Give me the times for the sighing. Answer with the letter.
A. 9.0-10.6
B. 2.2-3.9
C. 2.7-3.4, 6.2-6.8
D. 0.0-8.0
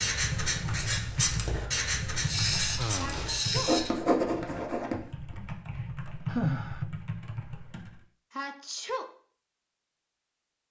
C.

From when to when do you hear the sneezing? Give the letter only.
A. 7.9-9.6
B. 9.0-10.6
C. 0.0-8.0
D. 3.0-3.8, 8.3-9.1
D.